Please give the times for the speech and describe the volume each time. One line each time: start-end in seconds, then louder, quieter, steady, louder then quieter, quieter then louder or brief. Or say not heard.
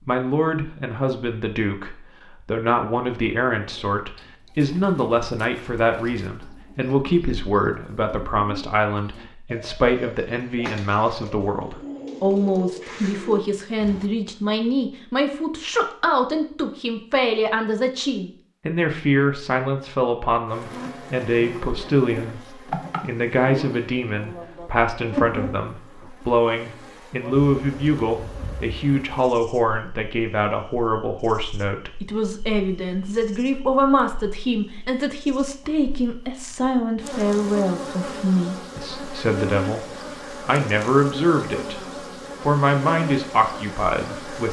0.1-41.8 steady
42.4-44.4 brief.